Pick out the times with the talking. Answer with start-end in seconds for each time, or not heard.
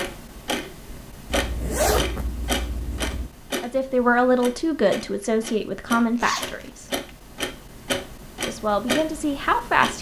3.6-6.9, 8.4-9.9.